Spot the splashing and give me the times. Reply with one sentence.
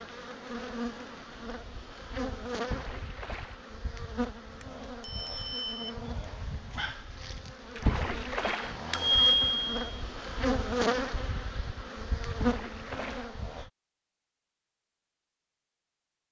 You can hear the splashing from 2.6 to 3.6 s, from 7.8 to 8.8 s and from 12.3 to 13.3 s.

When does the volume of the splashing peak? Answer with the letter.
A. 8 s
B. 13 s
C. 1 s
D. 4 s
A.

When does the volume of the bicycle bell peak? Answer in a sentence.
The volume of the bicycle bell peaks at 9 seconds.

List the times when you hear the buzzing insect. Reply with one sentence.
You can hear the buzzing insect from 0.0 to 13.7 s.